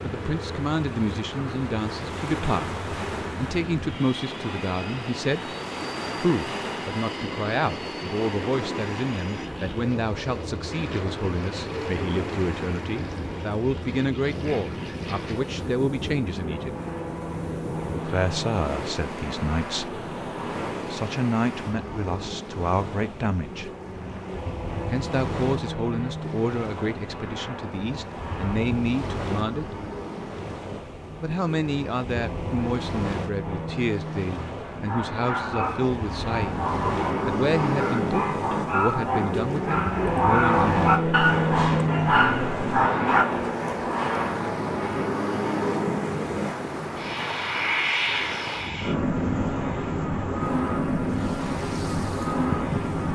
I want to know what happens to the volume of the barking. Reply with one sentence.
The loudness of the barking goes up.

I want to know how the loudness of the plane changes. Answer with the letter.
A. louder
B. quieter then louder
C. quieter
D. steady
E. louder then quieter
A.